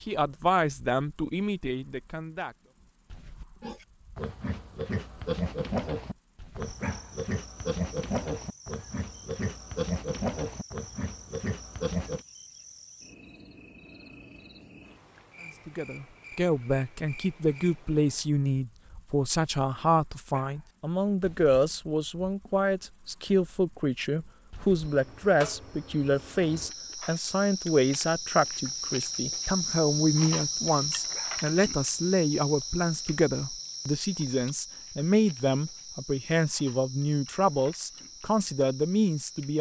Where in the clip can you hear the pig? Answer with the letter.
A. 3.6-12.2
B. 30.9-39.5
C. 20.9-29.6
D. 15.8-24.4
A.